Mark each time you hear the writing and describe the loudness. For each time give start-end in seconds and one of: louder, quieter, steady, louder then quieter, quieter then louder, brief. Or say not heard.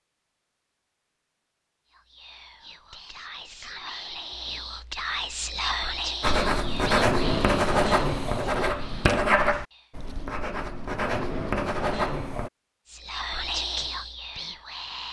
6.2-12.5 quieter then louder.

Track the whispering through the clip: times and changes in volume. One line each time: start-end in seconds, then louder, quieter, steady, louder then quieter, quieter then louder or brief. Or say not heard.
1.9-9.9 louder then quieter
12.9-15.0 brief.